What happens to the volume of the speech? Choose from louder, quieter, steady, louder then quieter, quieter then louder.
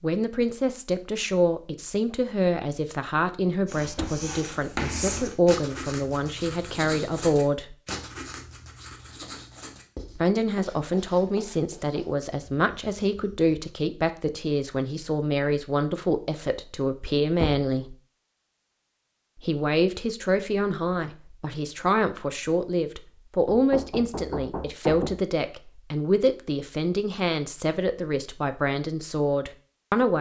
steady.